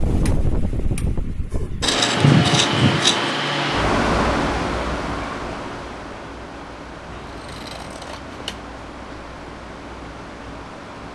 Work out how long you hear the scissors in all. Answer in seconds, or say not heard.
3 s.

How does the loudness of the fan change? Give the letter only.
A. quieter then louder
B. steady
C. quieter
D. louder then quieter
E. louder
C.